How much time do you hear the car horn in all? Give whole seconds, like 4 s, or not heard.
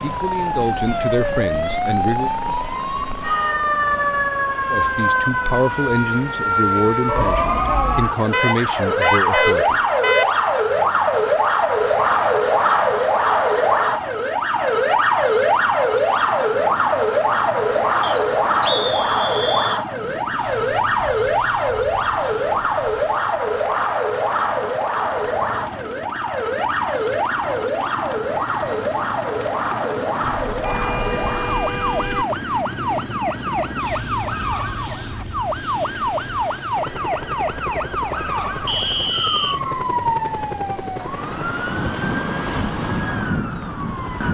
4 s.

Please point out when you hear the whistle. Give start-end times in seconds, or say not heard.
18.0-19.9, 38.6-39.6.